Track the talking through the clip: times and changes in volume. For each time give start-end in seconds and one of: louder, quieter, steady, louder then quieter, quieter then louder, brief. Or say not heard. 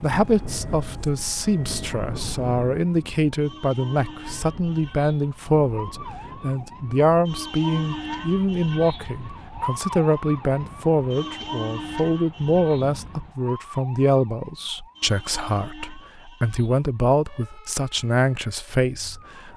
0.0-19.5 steady.